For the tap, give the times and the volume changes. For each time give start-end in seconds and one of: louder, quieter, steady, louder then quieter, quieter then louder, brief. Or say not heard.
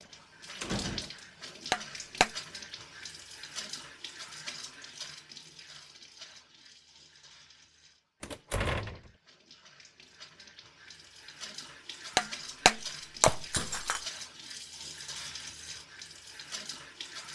0.0-17.3 quieter then louder.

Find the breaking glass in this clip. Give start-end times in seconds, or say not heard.
1.7-2.3, 12.2-14.0.